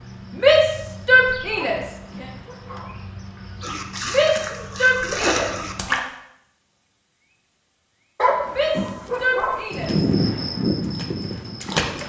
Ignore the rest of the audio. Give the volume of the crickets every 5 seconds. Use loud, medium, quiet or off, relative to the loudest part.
quiet, medium, loud.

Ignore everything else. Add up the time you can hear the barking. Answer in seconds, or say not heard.
3 s.